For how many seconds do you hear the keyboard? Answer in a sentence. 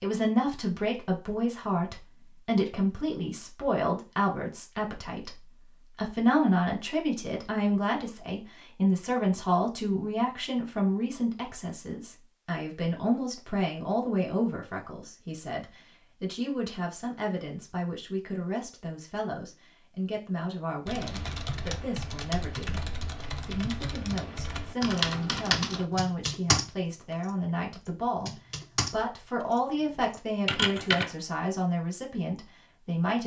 The keyboard can be heard for 10 seconds in total.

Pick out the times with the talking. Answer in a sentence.
The talking can be heard from 0.0 to 22.8 s and from 23.4 to 33.2 s.